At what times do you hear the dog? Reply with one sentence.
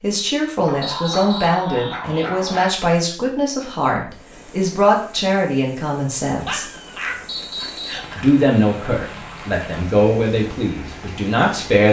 You can hear the dog from 0.7 to 2.7 s and from 6.4 to 8.2 s.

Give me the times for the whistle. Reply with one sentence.
The whistle can be heard from 0.8 to 1.6 s and from 7.2 to 8.1 s.